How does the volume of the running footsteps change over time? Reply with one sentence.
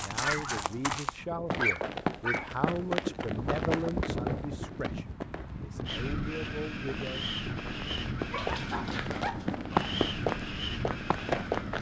The volume of the running footsteps goes down, then up.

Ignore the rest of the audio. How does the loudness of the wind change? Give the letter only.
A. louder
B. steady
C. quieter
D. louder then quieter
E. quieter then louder
A.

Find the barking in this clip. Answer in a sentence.
The barking can be heard from 0.2 to 2.5 s and from 8.3 to 9.9 s.